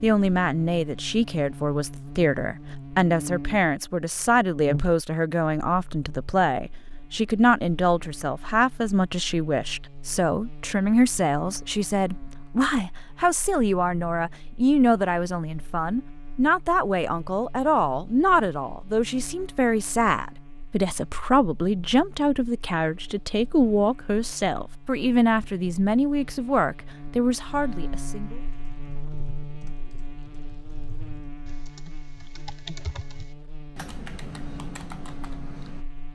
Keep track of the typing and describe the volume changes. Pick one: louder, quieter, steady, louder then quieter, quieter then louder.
louder.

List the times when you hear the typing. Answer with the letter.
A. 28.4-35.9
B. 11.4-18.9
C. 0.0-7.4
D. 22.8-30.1
A.